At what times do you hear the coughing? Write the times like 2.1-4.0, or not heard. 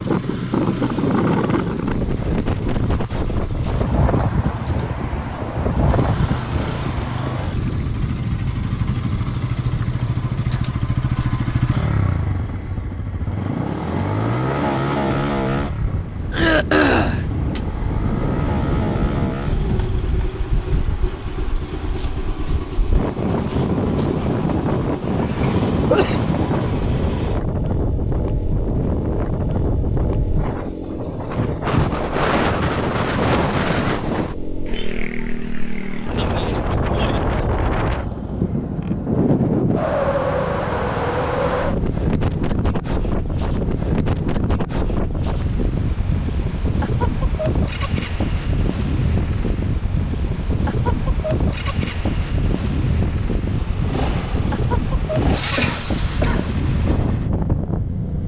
16.3-17.2, 25.1-26.2, 55.5-56.6.